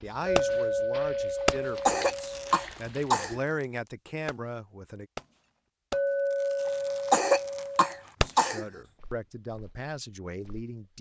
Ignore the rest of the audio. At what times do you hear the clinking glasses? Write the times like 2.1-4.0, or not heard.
0.2-2.6, 5.9-8.1.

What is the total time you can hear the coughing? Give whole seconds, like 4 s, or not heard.
4 s.